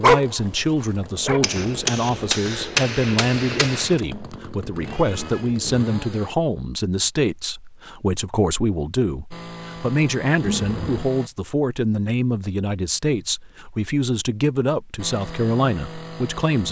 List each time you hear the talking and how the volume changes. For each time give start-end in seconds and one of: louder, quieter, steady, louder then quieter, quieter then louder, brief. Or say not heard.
0.0-16.6 steady.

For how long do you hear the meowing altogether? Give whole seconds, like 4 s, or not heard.
2 s.